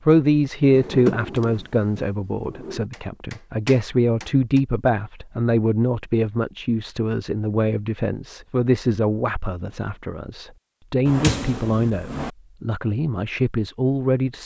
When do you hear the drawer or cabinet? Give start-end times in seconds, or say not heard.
0.6-2.9, 11.1-12.3.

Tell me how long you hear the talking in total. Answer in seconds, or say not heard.
14 s.